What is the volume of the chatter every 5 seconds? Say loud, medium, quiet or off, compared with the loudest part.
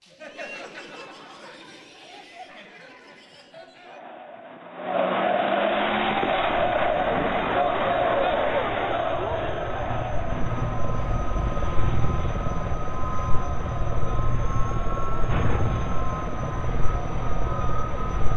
quiet, loud, quiet, quiet.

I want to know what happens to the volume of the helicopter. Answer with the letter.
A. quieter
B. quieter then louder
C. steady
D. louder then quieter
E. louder
E.